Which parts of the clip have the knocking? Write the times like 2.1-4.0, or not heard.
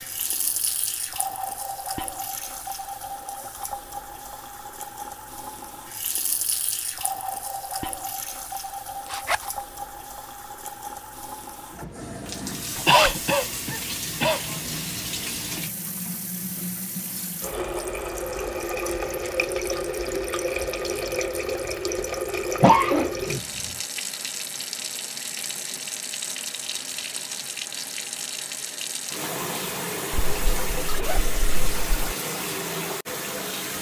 not heard.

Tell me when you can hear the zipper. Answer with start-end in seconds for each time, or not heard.
9.1-9.6, 12.8-13.2, 30.1-32.1.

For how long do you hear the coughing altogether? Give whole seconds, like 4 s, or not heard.
2 s.